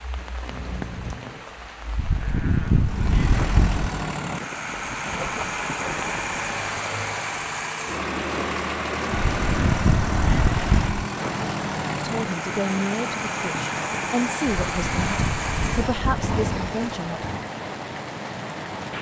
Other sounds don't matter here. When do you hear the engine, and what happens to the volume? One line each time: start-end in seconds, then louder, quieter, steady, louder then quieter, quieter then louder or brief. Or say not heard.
2.8-17.5 steady.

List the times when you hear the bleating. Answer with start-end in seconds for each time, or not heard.
1.9-3.9, 9.1-11.0, 14.4-16.3.